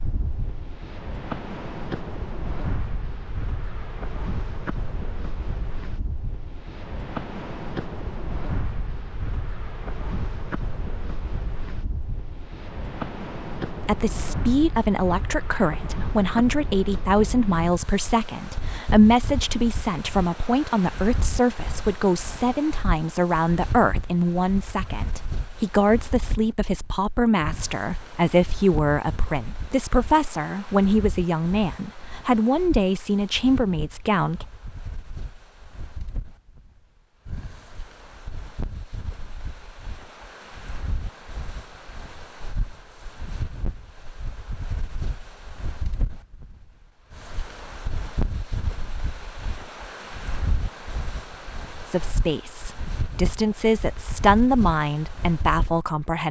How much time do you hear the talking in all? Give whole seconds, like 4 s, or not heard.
25 s.